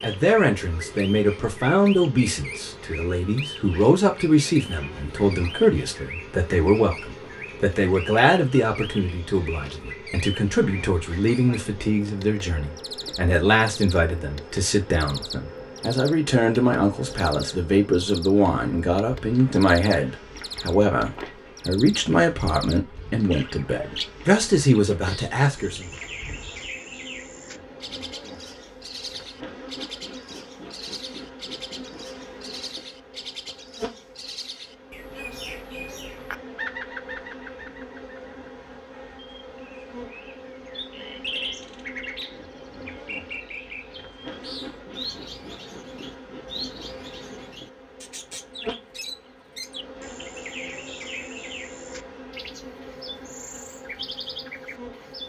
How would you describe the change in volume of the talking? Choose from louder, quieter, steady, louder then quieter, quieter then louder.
steady.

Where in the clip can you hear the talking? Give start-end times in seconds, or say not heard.
0.0-25.9.